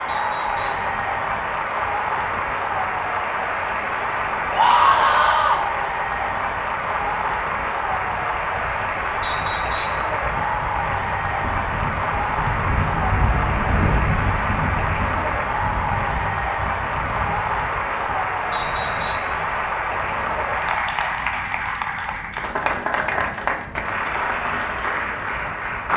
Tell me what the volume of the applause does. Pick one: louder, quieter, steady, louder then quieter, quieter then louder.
steady.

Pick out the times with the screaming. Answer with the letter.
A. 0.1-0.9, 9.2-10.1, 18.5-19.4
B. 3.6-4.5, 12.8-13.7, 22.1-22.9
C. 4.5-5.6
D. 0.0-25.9
C.